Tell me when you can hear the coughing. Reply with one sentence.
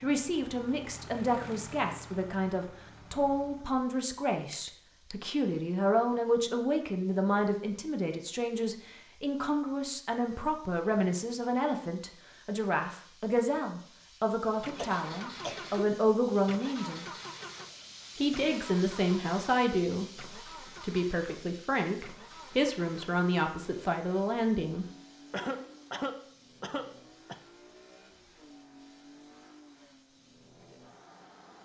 The coughing can be heard from 4.5 to 5.2 s, from 14.8 to 16.0 s and from 25.3 to 27.4 s.